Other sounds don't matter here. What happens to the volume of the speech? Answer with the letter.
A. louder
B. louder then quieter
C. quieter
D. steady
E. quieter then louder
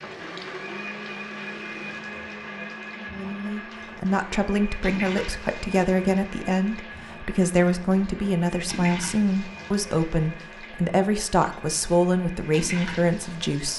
D.